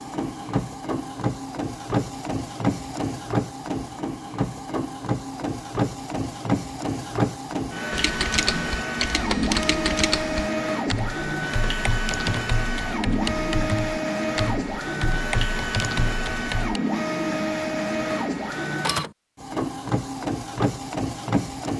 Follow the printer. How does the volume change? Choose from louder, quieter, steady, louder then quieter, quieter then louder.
steady.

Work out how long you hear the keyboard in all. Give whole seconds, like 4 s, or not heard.
9 s.